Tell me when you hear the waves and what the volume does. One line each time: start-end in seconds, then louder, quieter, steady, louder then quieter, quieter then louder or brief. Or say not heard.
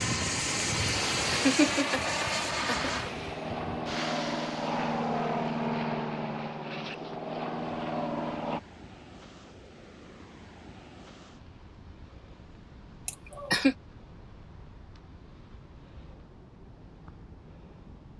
0.0-18.1 quieter.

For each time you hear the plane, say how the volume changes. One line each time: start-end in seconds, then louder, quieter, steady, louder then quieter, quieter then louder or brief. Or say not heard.
0.0-8.6 steady.